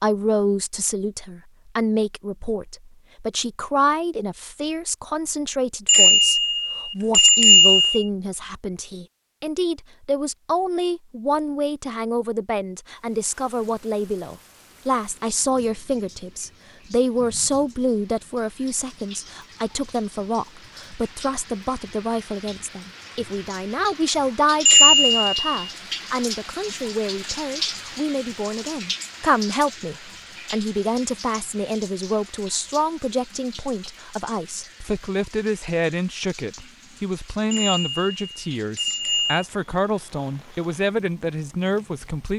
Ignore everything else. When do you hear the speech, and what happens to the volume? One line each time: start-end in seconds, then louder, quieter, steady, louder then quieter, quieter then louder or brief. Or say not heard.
0.0-42.3 steady.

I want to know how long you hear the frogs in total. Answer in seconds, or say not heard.
not heard.